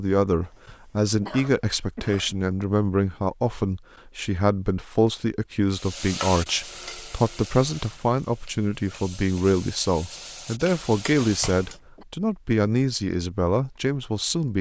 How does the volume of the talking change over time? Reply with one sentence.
The loudness of the talking stays about the same.